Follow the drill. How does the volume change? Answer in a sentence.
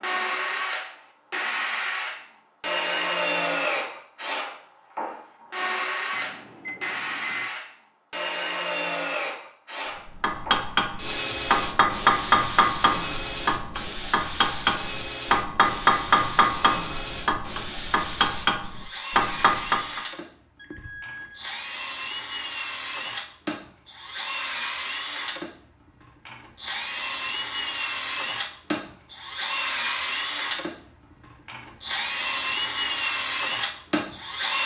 The loudness of the drill goes down, then up.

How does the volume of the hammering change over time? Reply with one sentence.
The loudness of the hammering stays about the same.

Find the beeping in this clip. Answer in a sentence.
You can hear the beeping from 6.1 to 7.5 s and from 20.6 to 21.5 s.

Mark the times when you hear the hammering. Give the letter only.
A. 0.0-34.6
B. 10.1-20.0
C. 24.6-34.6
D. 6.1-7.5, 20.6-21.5
B.